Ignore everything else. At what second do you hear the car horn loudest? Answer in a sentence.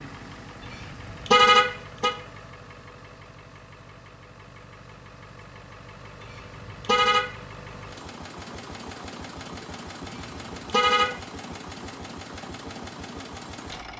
The loudest moment of the car horn is at 1 second.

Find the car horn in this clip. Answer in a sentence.
You can hear the car horn from 0.7 to 2.1 s, from 6.3 to 7.3 s and from 10.2 to 11.2 s.